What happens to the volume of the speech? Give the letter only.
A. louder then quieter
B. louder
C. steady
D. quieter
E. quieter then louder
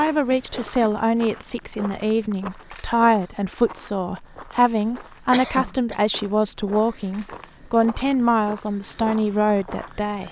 C.